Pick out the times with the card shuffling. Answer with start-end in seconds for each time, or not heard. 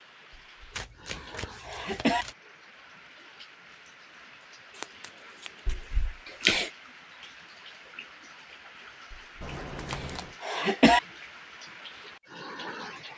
0.7-2.4, 4.7-6.0, 9.4-10.3.